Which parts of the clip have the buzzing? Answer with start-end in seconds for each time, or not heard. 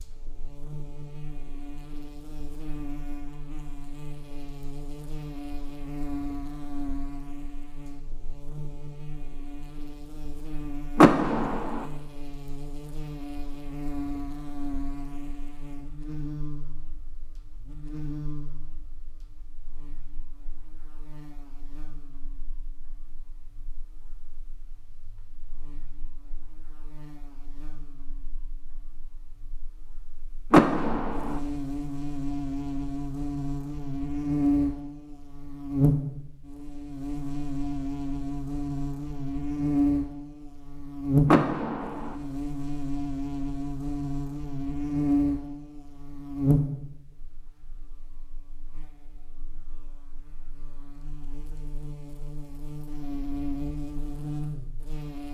0.0-55.2.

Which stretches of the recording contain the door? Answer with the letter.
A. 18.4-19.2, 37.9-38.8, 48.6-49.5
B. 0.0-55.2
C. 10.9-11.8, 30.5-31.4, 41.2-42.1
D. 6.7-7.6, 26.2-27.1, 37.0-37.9
C.